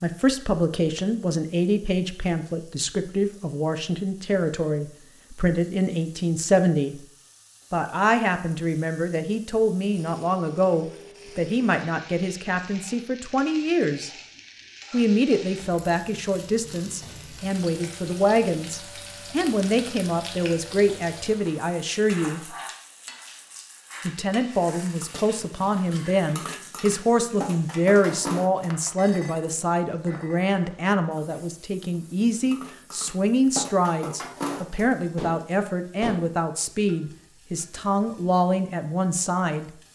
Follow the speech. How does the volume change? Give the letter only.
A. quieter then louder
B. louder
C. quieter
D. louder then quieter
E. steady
E.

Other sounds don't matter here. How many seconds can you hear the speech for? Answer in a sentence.
The speech can be heard for 37 seconds in total.